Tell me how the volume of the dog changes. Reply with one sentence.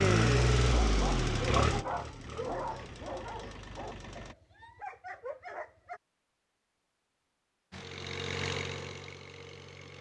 The volume of the dog goes down, then up.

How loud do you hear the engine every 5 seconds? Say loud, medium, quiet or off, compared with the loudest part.
loud, medium.